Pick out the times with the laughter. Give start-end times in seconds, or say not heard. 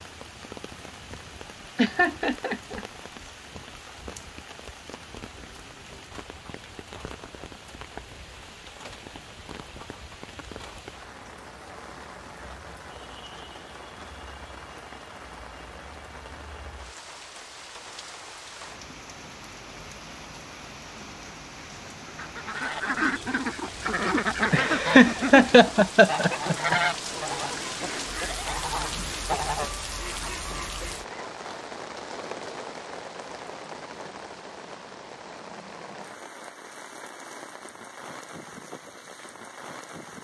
1.8-2.9, 24.5-26.8.